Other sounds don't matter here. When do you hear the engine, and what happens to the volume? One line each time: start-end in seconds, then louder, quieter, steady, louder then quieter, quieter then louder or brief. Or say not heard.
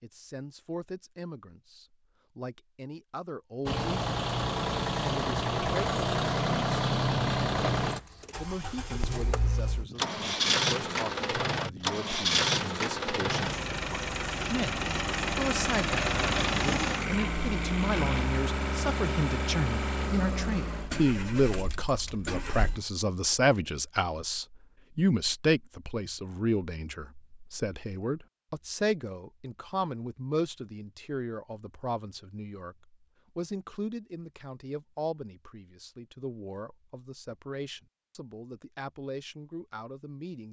3.6-22.8 quieter.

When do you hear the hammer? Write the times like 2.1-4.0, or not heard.
not heard.